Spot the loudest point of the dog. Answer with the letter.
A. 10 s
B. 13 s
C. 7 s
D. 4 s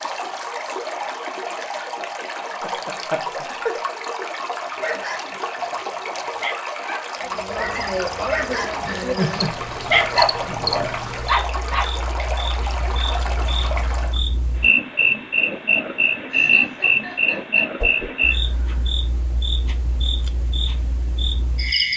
A.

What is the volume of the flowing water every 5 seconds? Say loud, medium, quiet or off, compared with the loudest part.
loud, loud, loud, off, off.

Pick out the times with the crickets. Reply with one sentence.
You can hear the crickets from 7.2 to 21.9 s.